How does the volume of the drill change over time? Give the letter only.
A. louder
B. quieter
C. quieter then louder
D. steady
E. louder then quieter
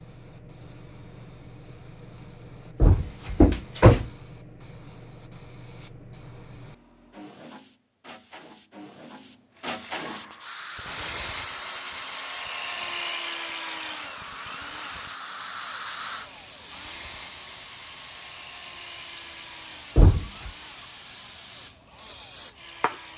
B.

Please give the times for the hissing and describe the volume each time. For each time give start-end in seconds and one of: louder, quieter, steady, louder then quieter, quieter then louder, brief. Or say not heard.
0.0-23.1 louder.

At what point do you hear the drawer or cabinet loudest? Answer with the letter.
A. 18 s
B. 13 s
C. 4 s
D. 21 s
C.